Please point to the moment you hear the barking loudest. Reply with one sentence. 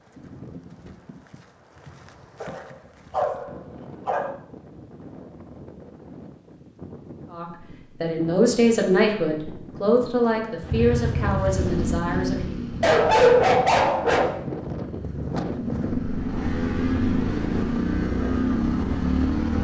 The volume of the barking peaks at 13 seconds.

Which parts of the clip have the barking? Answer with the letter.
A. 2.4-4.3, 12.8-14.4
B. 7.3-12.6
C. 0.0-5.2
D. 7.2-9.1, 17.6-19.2
A.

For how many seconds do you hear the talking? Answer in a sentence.
The talking can be heard for 5 seconds in total.